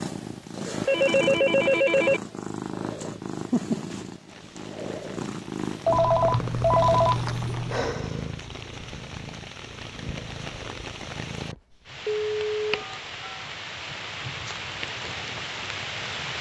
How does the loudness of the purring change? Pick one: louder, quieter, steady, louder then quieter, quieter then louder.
quieter.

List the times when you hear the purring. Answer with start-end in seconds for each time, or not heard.
0.0-11.6.